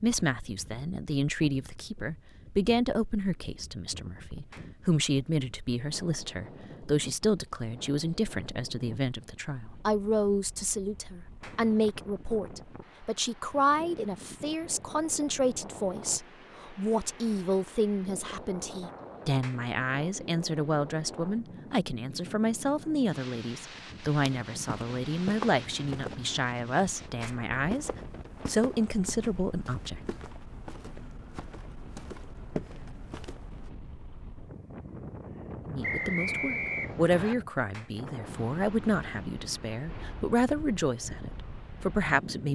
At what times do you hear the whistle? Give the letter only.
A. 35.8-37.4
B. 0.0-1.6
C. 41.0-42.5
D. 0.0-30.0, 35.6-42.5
A.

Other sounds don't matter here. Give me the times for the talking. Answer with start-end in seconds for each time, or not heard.
0.0-30.0, 35.6-42.5.